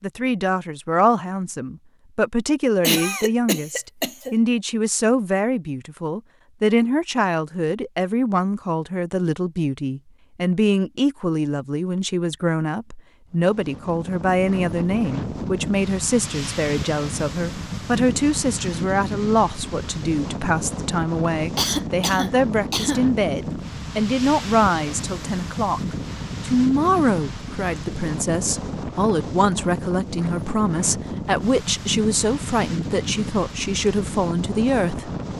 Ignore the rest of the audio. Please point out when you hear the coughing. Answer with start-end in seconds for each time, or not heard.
2.8-4.3, 21.6-23.1.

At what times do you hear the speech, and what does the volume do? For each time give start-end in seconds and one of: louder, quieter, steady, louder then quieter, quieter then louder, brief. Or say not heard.
0.0-25.8 steady
26.4-35.1 steady.